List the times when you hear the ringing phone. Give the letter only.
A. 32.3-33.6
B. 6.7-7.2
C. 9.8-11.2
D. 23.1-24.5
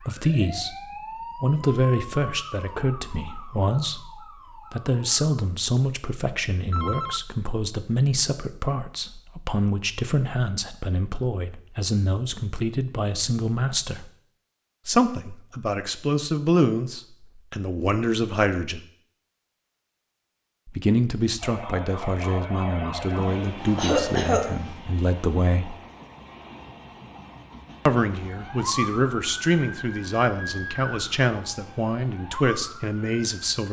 B.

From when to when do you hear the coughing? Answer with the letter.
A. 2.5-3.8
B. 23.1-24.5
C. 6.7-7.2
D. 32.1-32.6
B.